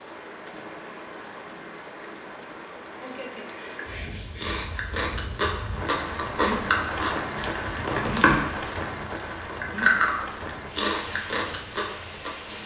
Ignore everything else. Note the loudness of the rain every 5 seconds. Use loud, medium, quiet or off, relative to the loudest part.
medium, loud, medium.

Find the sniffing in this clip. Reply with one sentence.
The sniffing can be heard from 3.0 to 5.2 s.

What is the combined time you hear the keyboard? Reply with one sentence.
The keyboard can't be heard in this clip.